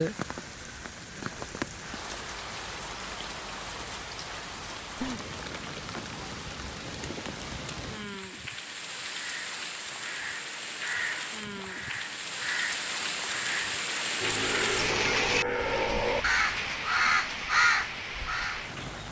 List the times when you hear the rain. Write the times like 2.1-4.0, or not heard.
0.0-19.0.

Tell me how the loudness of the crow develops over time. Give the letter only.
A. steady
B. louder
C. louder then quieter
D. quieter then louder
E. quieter
B.